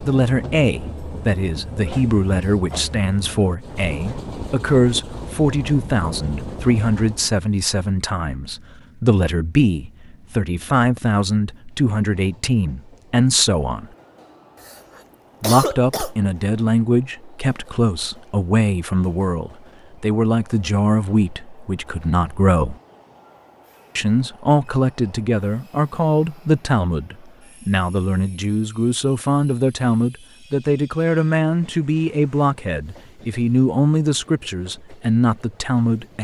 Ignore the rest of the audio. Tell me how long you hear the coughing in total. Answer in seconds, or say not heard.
2 s.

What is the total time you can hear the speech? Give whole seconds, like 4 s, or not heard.
33 s.